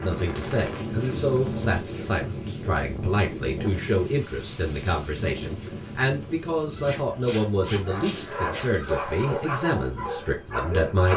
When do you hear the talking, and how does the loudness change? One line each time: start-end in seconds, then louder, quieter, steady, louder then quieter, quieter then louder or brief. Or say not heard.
0.0-11.1 steady.